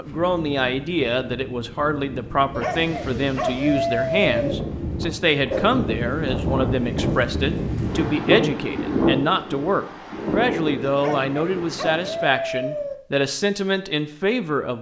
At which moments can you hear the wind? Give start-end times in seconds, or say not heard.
0.0-12.3.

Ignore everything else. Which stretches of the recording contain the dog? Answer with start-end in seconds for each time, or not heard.
2.5-4.5, 10.9-12.9.